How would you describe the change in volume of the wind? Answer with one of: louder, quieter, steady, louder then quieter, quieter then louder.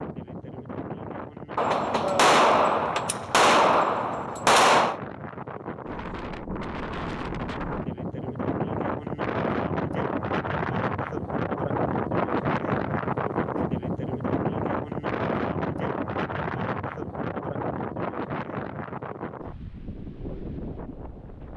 louder then quieter.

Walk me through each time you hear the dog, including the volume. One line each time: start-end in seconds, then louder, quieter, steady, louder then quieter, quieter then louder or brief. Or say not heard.
not heard.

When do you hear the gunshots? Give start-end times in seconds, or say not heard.
1.6-5.0.